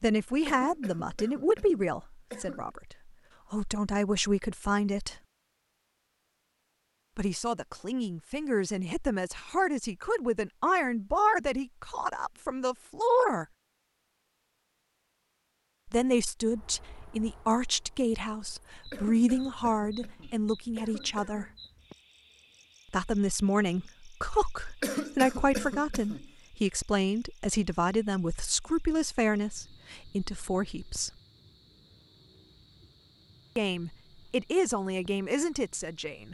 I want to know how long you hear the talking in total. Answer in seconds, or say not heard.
28 s.